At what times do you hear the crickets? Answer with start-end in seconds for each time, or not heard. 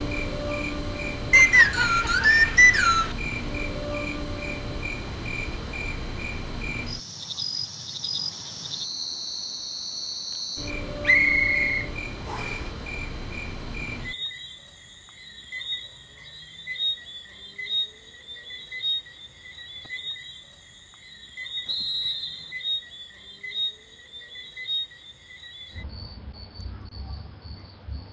0.0-28.0.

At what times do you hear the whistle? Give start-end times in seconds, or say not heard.
1.3-3.1, 11.1-12.6, 21.6-22.6.